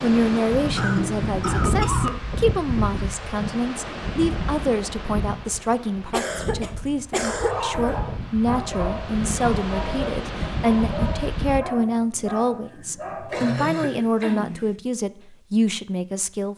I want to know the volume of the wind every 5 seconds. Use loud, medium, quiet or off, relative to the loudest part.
loud, medium, loud, off.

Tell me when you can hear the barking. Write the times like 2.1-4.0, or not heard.
7.2-13.8.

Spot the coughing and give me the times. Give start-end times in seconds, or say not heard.
0.8-2.2, 6.1-8.0, 13.3-14.8.